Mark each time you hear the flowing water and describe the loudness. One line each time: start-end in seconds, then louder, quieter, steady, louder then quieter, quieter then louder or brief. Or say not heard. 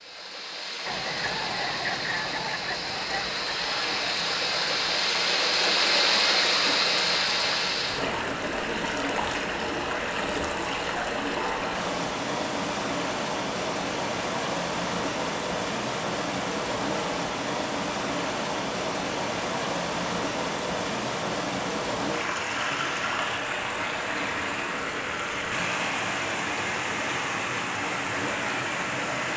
0.0-29.3 steady.